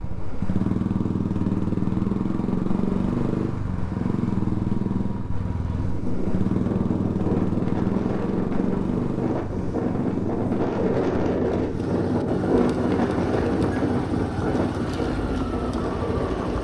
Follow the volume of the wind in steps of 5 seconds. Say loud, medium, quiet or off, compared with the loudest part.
off, medium, loud, loud.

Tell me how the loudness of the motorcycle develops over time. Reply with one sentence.
The volume of the motorcycle goes down.